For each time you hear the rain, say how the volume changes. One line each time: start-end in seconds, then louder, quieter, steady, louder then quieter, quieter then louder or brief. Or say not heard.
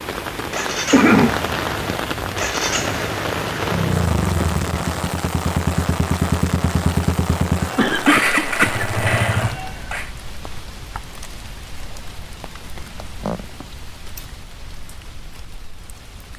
0.0-16.3 quieter.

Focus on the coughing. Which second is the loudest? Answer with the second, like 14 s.
1 s.